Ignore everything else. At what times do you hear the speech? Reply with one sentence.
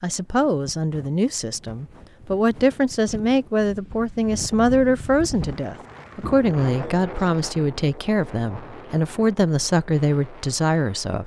You can hear the speech from 0.0 to 11.2 s.